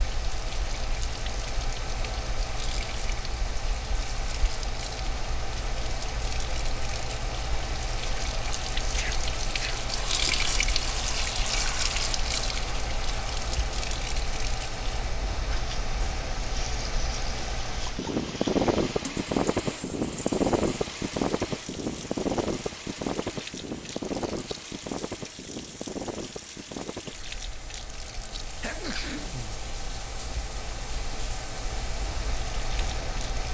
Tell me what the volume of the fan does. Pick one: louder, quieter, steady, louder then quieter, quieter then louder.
louder then quieter.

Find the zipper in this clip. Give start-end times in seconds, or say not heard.
not heard.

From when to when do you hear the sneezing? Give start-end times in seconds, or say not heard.
8.9-9.8, 28.6-29.6.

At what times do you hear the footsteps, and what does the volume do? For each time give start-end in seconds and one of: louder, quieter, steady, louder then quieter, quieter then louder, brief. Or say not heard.
not heard.